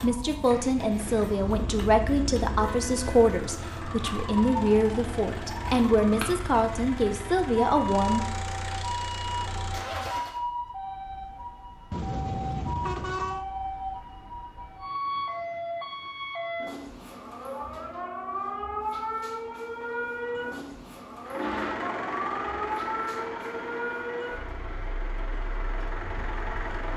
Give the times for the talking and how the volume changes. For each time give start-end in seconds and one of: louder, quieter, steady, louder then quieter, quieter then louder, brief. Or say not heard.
0.0-8.2 steady.